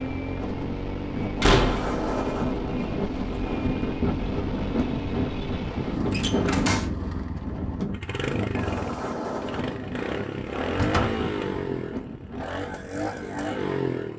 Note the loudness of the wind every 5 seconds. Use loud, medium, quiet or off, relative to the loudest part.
loud, loud, medium.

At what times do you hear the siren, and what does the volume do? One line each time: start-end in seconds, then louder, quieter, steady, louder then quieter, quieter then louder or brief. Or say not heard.
not heard.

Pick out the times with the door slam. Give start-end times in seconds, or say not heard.
1.4-1.9, 6.1-6.9, 10.8-11.2.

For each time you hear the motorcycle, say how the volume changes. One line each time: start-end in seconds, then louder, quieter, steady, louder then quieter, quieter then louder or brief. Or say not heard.
0.0-14.1 steady.